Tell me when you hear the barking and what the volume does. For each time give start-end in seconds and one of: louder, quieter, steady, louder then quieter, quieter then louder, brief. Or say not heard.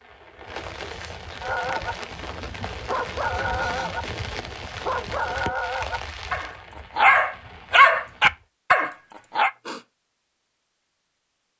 1.4-9.5 louder.